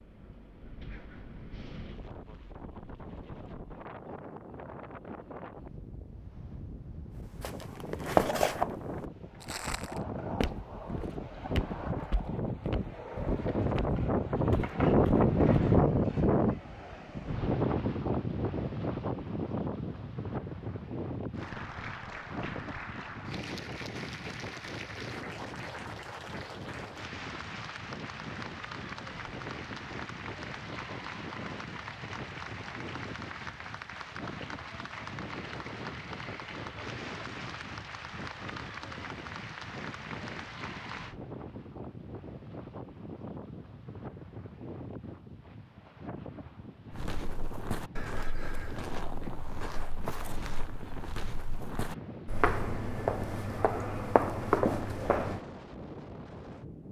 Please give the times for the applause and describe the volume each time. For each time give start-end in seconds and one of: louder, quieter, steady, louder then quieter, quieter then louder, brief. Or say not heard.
21.3-41.1 steady.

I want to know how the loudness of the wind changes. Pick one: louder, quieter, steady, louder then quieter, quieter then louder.
louder then quieter.